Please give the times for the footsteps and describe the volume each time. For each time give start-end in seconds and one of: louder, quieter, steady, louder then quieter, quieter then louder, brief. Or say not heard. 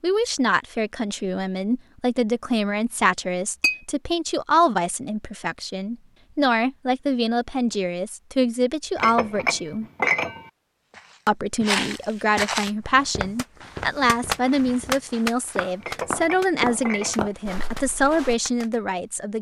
10.9-18.4 quieter then louder.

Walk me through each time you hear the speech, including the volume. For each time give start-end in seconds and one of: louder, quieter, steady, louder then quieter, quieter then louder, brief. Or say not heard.
0.0-9.8 steady
11.2-19.3 steady.